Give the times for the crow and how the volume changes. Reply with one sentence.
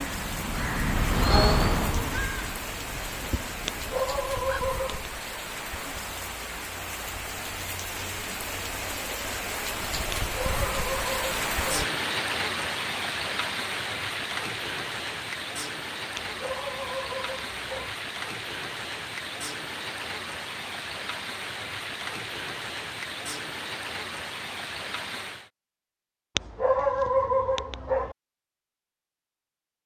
The crow can be heard from 0.0 to 4.6 s, getting louder then quieter.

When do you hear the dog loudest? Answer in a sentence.
The loudest moment of the dog is at 27 seconds.